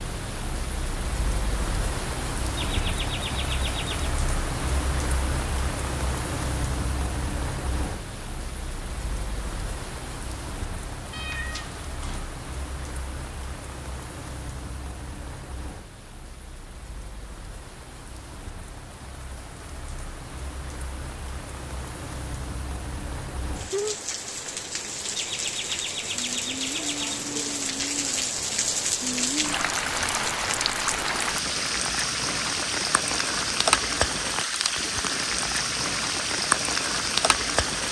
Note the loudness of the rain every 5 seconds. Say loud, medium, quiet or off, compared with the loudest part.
medium, medium, quiet, quiet, medium, loud, loud, loud.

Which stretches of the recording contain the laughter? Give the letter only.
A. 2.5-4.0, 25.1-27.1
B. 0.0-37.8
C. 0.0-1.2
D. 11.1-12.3
A.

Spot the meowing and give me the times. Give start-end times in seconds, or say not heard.
11.1-12.3.